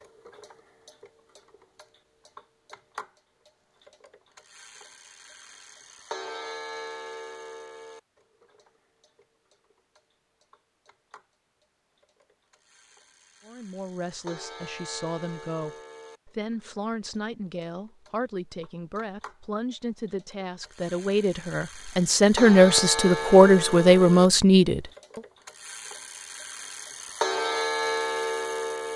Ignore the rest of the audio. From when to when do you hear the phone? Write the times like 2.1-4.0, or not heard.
not heard.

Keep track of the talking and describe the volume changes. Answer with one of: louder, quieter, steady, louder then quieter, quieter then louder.
louder.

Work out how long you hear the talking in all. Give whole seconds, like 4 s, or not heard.
12 s.